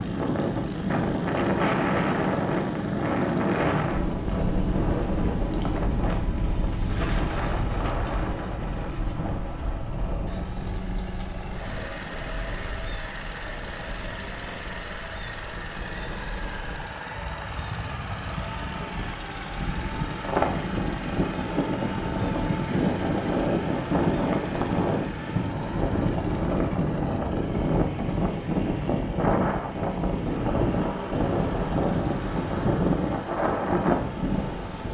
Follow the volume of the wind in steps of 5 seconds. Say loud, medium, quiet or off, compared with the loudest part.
loud, medium, quiet, quiet, loud, loud, loud.